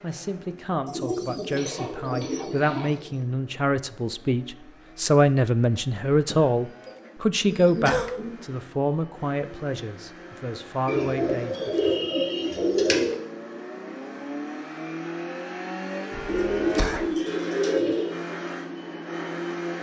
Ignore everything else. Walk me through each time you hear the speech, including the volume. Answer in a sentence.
You can hear the speech from 0.0 to 11.8 s, getting louder then quieter.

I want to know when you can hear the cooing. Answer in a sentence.
You can hear the cooing from 0.8 to 3.2 s, from 6.3 to 8.3 s, from 10.8 to 13.2 s and from 16.2 to 18.2 s.